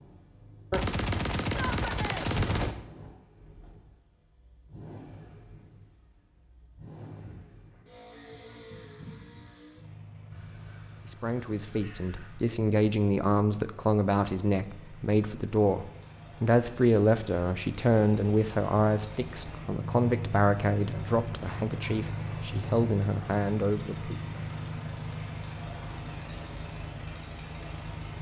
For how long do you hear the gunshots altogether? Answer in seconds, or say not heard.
4 s.